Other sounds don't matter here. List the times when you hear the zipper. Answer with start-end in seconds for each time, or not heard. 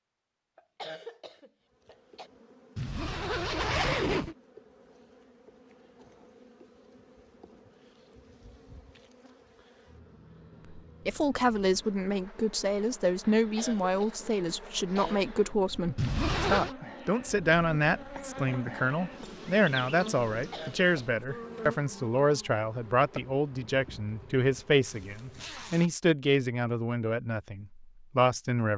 2.8-4.3, 15.9-16.8, 24.9-25.9.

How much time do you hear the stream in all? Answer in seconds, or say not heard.
not heard.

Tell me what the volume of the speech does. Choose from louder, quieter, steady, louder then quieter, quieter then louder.
steady.